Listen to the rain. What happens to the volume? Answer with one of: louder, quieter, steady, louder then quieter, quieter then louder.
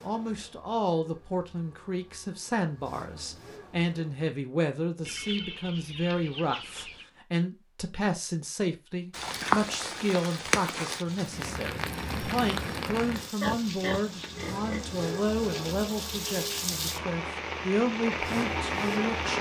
quieter then louder.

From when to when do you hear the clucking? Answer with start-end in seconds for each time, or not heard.
5.0-7.0.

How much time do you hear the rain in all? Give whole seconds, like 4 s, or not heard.
10 s.